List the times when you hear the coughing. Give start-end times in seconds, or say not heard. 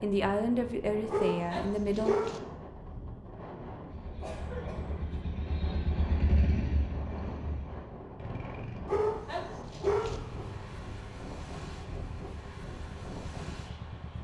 4.2-5.0.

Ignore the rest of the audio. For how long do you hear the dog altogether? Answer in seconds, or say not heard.
3 s.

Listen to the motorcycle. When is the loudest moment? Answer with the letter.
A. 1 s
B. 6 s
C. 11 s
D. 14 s
B.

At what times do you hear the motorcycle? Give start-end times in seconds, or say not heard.
3.9-14.2.